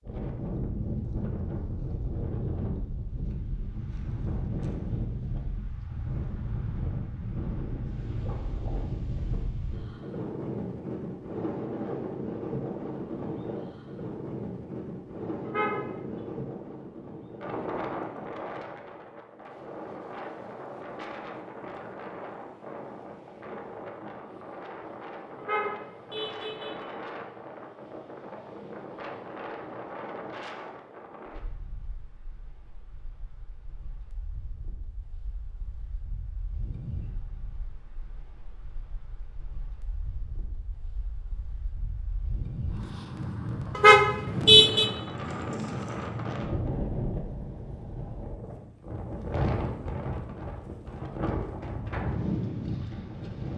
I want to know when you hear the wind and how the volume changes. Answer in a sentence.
You can hear the wind from 0.0 to 53.5 s, getting quieter then louder.